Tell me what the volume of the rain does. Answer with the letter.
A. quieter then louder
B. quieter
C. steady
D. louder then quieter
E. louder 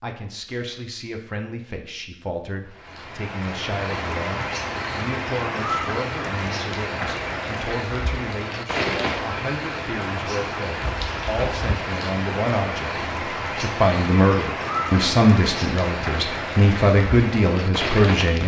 C.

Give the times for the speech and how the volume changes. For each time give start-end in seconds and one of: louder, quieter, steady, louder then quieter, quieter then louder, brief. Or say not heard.
0.0-18.4 louder.